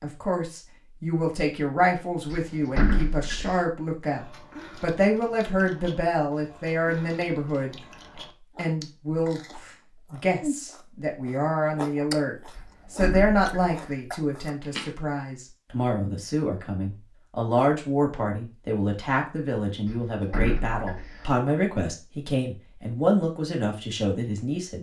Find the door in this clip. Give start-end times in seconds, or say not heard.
2.3-3.6, 12.6-14.0, 19.9-21.4.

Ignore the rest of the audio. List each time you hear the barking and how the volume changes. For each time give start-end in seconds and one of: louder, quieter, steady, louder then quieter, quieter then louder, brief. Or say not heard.
not heard.